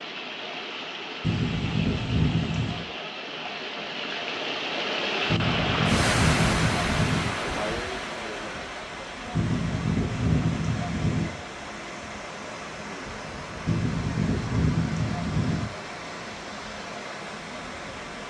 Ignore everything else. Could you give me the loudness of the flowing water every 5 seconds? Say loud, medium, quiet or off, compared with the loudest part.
medium, loud, medium, medium.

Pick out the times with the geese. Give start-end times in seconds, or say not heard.
1.2-2.9, 5.3-7.3, 9.3-11.3, 13.7-15.7.